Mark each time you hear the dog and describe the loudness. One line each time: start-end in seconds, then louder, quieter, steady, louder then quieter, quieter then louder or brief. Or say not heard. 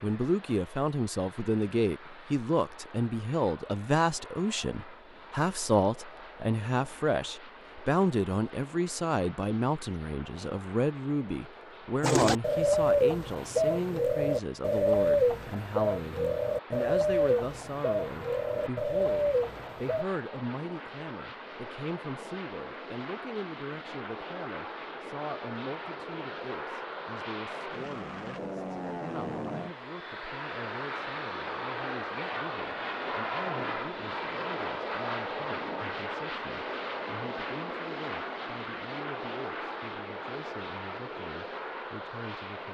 not heard.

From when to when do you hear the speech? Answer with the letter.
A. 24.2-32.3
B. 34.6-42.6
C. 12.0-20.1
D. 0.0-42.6
D.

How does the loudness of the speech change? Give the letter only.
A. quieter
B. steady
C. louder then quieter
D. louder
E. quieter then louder
A.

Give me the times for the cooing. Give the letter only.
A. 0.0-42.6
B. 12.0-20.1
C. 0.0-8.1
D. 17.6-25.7
B.